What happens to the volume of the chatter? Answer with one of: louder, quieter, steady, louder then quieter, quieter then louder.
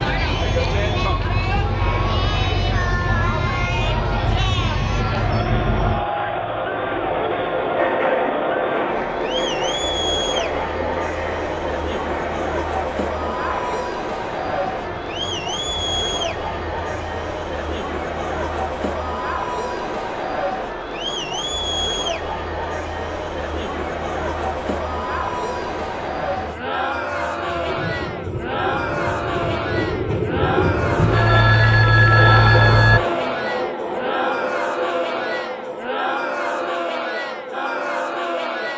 steady.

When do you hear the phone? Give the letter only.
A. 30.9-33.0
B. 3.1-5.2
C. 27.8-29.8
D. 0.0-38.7
A.